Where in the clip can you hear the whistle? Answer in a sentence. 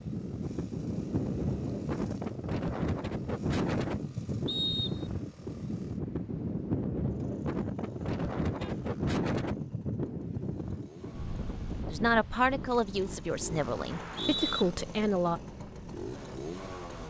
The whistle can be heard from 4.5 to 5.2 s and from 13.8 to 14.7 s.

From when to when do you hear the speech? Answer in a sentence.
You can hear the speech from 11.9 to 15.4 s.